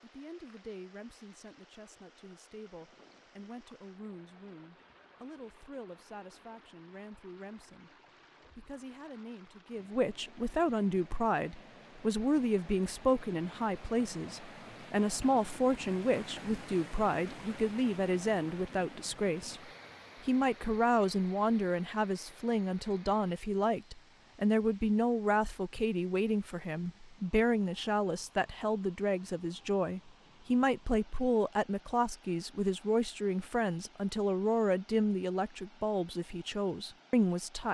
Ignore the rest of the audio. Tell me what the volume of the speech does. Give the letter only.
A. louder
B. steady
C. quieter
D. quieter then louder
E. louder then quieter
A.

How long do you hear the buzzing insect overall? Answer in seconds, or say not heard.
not heard.